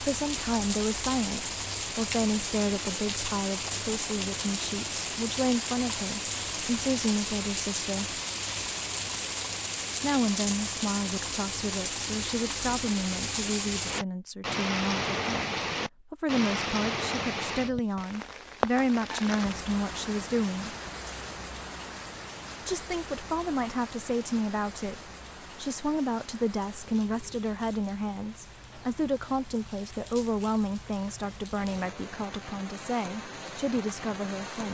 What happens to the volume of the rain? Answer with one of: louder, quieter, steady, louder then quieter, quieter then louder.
quieter.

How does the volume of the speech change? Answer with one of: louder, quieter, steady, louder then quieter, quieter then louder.
steady.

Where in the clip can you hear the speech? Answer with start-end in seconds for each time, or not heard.
0.0-8.2, 10.0-20.8, 22.6-34.6.